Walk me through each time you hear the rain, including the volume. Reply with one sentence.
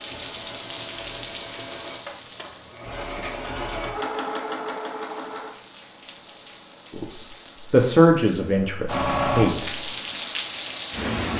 The rain can be heard from 0.0 to 11.3 s, getting quieter then louder.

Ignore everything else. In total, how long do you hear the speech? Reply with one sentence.
You can hear the speech for 3 seconds altogether.